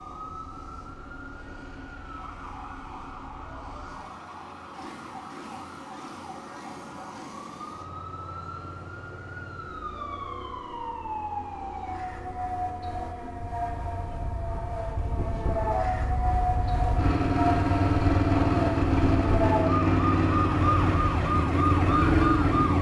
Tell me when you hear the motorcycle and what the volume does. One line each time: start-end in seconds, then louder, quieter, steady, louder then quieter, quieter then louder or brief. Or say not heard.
0.0-22.7 louder.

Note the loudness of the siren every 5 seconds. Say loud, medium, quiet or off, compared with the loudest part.
quiet, quiet, medium, loud, loud.